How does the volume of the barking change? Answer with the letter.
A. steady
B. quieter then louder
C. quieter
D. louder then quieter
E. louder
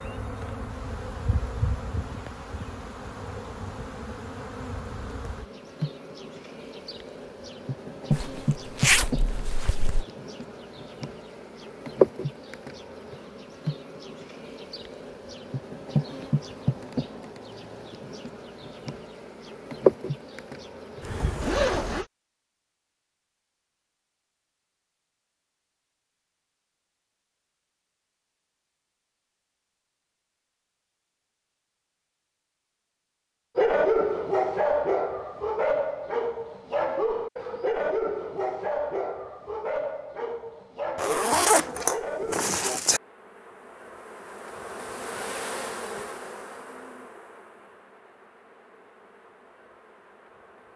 C.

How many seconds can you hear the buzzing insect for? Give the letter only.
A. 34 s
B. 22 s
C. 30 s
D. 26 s
C.